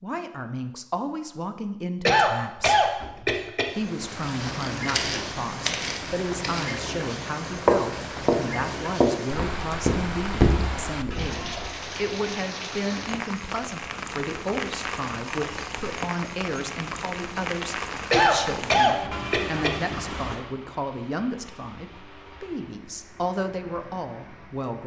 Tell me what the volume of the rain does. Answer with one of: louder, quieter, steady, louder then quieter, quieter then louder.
quieter.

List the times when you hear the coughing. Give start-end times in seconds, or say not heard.
2.0-3.6, 18.1-19.7.